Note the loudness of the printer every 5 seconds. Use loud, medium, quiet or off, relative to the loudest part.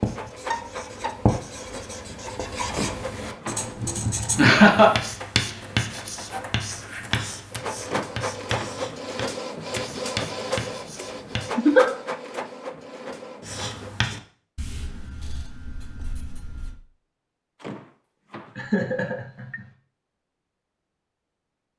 medium, loud, loud, off, off.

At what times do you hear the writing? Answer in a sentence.
The writing can be heard from 0.0 to 11.5 s and from 13.4 to 16.8 s.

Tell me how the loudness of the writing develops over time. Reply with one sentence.
The volume of the writing goes down.